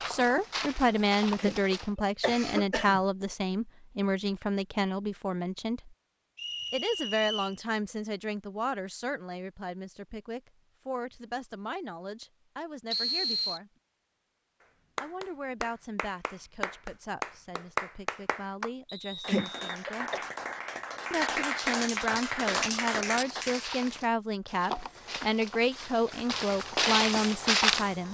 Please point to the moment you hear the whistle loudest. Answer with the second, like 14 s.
13 s.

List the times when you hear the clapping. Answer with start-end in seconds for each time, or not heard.
14.9-23.6.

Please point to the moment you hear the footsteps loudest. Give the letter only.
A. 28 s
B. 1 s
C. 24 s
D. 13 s
A.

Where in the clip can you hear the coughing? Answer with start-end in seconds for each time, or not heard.
1.4-3.0, 19.2-20.2.